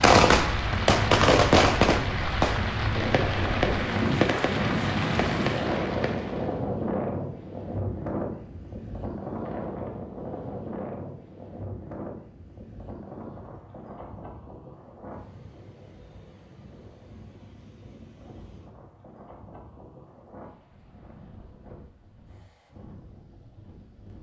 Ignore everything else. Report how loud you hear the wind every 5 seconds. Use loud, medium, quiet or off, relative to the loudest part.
loud, loud, medium, quiet, quiet.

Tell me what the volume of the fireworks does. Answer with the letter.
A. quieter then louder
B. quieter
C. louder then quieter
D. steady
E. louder
B.